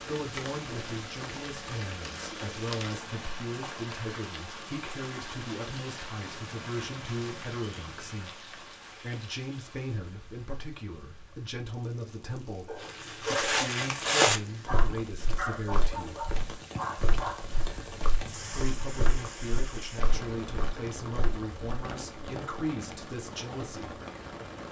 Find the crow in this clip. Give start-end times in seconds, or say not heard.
not heard.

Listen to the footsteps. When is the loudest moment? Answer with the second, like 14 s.
14 s.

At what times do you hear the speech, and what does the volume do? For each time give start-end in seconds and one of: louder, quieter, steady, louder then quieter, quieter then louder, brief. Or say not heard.
0.0-16.1 steady
18.5-24.0 steady.